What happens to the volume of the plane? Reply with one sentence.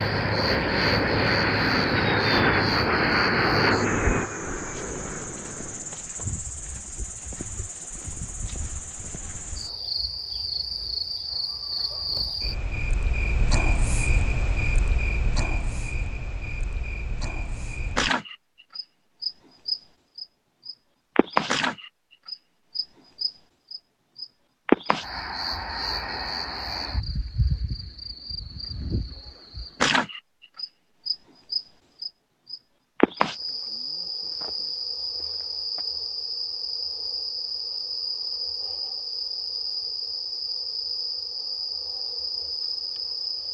The loudness of the plane goes down.